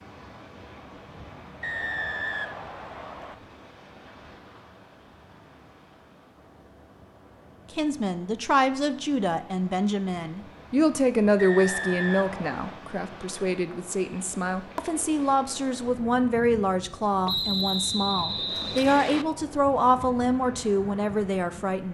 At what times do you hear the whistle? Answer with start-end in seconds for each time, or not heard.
1.6-3.4, 11.3-12.8, 17.2-19.2.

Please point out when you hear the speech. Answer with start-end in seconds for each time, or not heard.
7.8-21.8.